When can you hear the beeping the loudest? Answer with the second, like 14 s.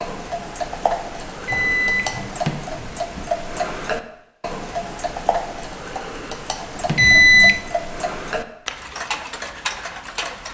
7 s.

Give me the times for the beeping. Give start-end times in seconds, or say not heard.
1.2-3.2, 6.8-7.6.